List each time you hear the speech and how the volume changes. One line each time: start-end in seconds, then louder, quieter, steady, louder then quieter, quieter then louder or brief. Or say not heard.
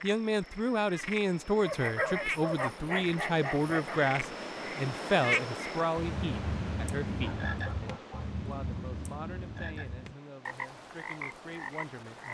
0.0-12.2 quieter.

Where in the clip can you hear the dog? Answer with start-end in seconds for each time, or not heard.
1.6-4.0, 7.2-8.4.